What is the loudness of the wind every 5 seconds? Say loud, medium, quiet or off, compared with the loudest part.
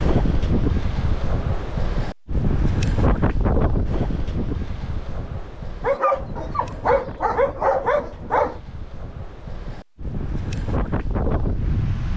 loud, quiet, loud.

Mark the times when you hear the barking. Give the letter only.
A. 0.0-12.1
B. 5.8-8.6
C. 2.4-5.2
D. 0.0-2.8
B.